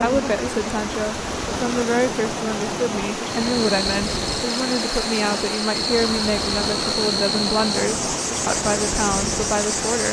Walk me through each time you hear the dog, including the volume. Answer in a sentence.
The dog can't be heard in this clip.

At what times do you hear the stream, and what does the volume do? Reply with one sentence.
The stream can be heard from 0.0 to 10.0 s, at a steady volume.